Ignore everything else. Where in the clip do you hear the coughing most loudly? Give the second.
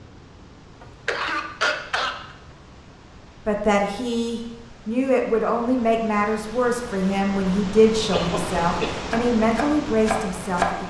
2 s.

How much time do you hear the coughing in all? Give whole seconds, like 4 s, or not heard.
2 s.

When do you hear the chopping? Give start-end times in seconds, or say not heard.
9.1-10.8.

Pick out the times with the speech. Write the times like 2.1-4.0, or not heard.
3.5-10.8.